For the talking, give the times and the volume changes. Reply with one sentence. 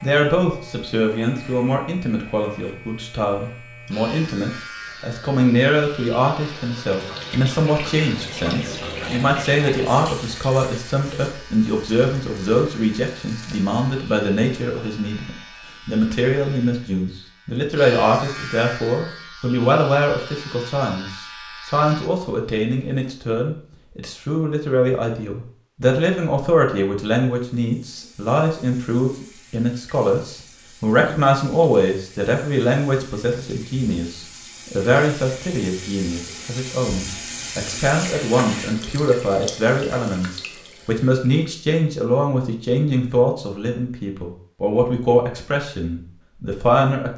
The talking can be heard from 0.0 to 47.1 s, at a steady volume.